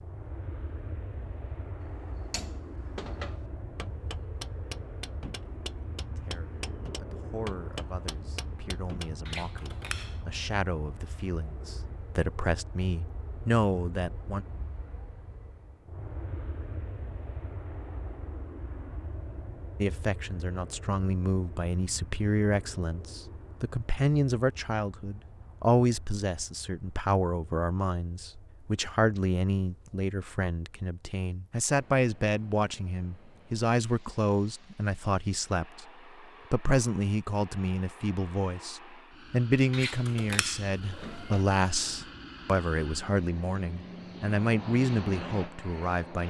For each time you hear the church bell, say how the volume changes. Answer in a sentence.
You can't hear the church bell here.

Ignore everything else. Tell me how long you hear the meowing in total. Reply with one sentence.
You can hear the meowing for 3 seconds altogether.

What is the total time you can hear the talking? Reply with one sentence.
You can hear the talking for 34 seconds altogether.